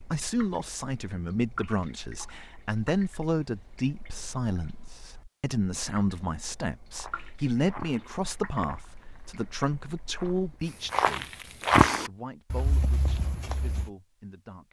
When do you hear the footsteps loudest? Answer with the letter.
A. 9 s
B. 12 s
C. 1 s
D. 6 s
B.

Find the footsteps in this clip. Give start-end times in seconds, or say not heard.
6.9-13.9.